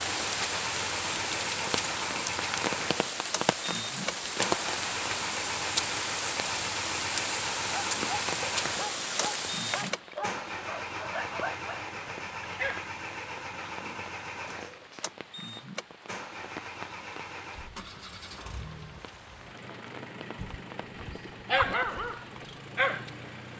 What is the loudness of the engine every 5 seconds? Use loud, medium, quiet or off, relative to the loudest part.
loud, loud, loud, medium, medium.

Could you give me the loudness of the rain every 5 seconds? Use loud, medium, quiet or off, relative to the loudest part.
loud, loud, quiet, quiet, quiet.